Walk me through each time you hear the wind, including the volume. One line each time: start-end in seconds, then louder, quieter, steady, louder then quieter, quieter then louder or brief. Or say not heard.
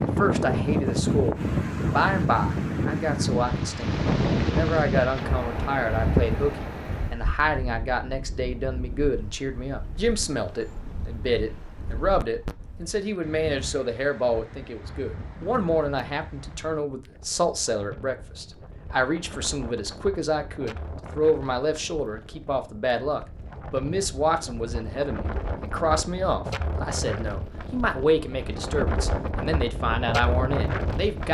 0.0-31.2 quieter then louder.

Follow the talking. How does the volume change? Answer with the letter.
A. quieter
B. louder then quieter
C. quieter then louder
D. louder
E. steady
E.